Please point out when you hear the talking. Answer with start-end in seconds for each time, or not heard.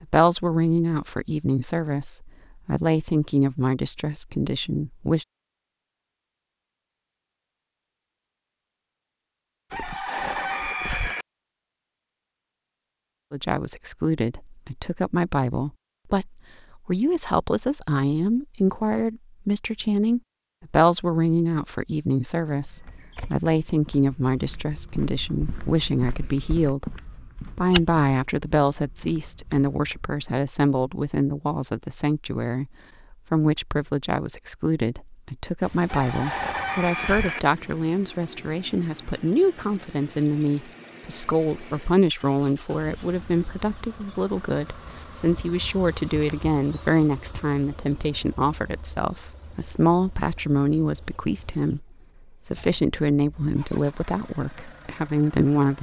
0.0-5.2, 13.3-51.9, 52.5-55.7.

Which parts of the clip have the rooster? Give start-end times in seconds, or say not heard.
9.7-11.2, 35.9-37.4.